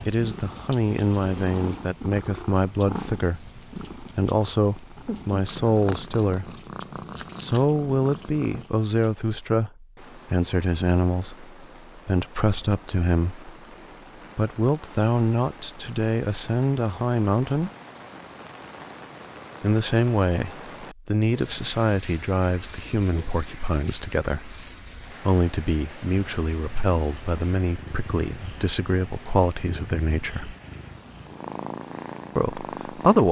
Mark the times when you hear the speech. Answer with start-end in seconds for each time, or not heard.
0.0-6.5, 7.3-13.5, 14.3-17.7, 19.6-30.6, 32.4-33.2.